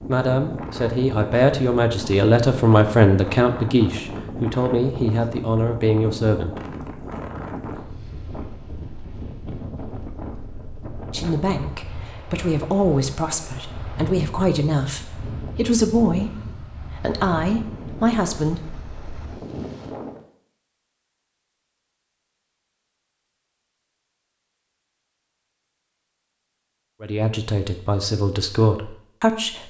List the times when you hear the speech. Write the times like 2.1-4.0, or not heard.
0.1-6.5, 11.1-18.6, 27.0-29.6.